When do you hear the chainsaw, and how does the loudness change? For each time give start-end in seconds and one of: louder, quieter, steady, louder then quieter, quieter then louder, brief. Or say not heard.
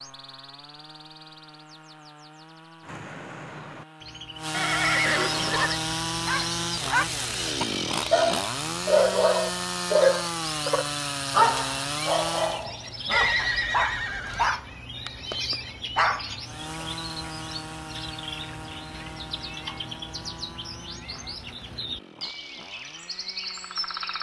0.0-12.7 louder
16.4-24.1 quieter.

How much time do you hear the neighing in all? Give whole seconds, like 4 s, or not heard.
3 s.